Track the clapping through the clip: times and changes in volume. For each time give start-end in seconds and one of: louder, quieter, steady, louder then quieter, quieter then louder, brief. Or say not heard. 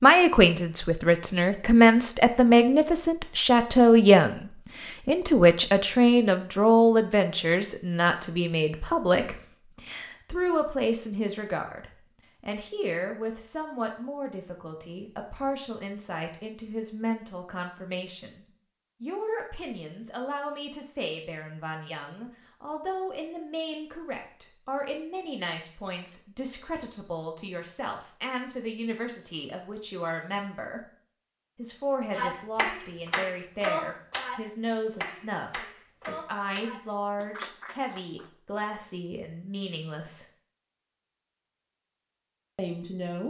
32.1-38.3 quieter.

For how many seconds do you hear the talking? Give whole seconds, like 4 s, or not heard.
40 s.